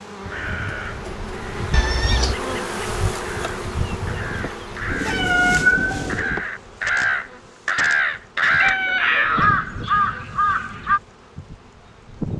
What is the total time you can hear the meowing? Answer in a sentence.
You can hear the meowing for 3 seconds altogether.